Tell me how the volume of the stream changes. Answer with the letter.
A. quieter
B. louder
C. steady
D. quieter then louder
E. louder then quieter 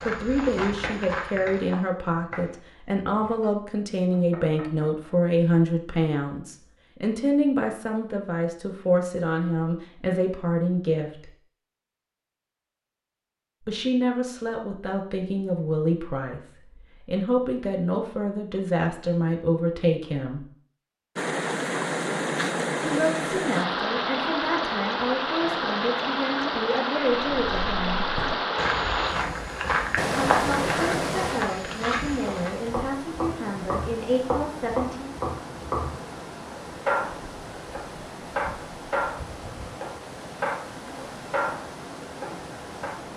A.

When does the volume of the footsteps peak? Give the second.
30 s.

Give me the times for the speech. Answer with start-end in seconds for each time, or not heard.
0.1-11.3, 13.7-20.4, 22.9-28.1, 30.1-35.1.